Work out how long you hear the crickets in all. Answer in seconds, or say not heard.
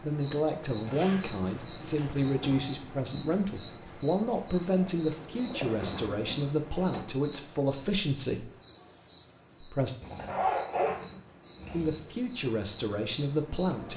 14 s.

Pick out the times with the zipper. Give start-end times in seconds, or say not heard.
0.8-2.6, 5.3-6.9, 10.0-12.0.